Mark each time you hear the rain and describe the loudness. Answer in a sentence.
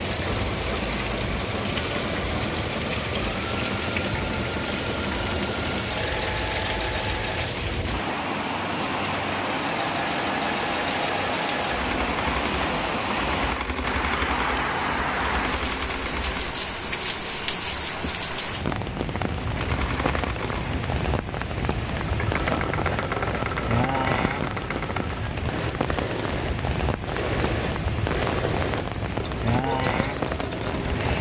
The rain can be heard from 0.0 to 31.1 s, at a steady volume.